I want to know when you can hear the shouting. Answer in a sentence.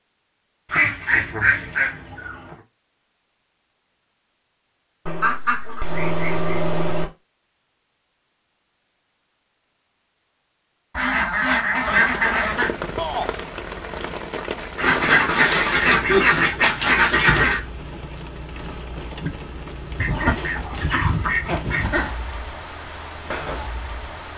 The shouting can be heard from 12.9 to 13.3 s.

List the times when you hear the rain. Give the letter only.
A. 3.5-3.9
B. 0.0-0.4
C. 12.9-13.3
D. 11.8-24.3
D.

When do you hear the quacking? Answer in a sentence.
You can hear the quacking from 0.7 to 2.5 s, from 5.0 to 7.0 s, from 10.9 to 12.7 s, from 14.8 to 17.6 s and from 19.9 to 22.1 s.